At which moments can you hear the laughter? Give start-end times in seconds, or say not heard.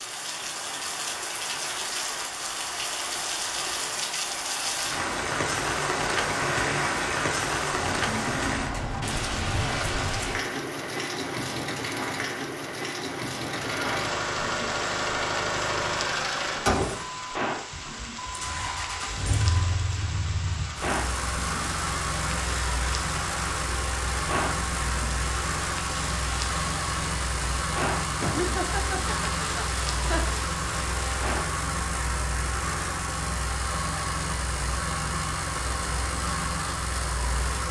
28.1-30.4.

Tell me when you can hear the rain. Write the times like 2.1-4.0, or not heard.
0.0-31.6.